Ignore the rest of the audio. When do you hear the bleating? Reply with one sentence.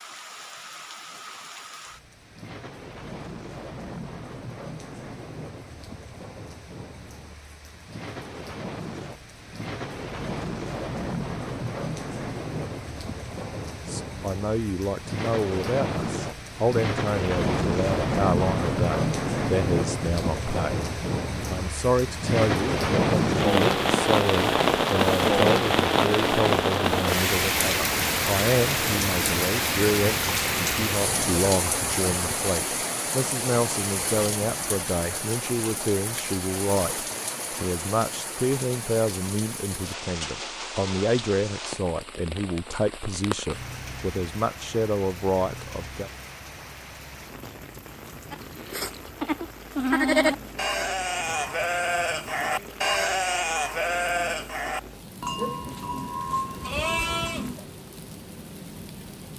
You can hear the bleating from 48.3 to 57.6 s.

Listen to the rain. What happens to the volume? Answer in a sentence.
The loudness of the rain goes up, then down.